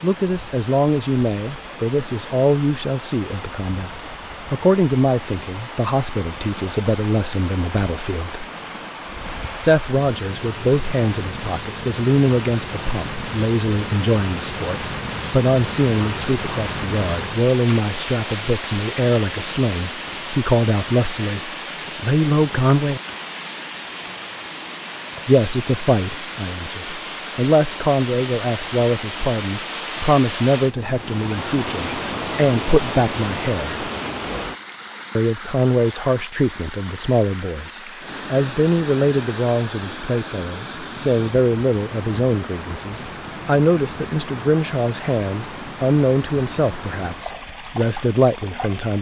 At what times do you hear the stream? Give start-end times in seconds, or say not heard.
0.0-48.9.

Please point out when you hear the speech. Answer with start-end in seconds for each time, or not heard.
0.0-8.4, 9.6-23.0, 25.2-33.8, 35.1-48.9.